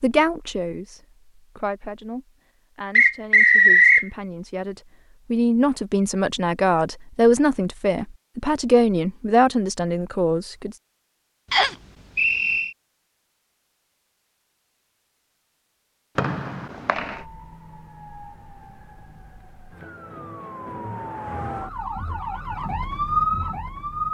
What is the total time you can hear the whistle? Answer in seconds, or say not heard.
3 s.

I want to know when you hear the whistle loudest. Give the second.
4 s.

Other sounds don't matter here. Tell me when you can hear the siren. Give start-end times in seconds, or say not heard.
16.9-24.0.